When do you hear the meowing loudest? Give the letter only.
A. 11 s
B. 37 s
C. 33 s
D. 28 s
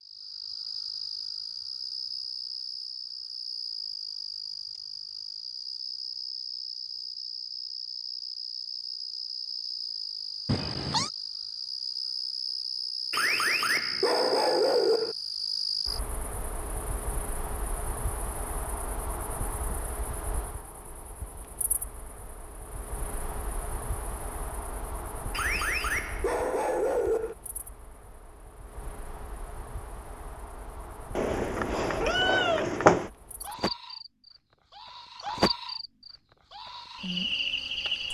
C.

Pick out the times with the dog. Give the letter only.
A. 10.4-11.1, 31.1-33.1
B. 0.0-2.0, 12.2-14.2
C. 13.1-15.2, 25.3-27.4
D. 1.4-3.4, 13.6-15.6
C.